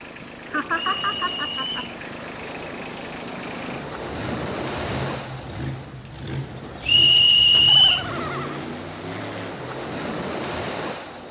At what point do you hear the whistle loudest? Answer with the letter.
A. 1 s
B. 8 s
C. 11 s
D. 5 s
B.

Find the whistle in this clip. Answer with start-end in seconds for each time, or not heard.
0.8-1.8, 6.8-8.1.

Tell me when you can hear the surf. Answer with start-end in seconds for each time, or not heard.
0.1-11.2.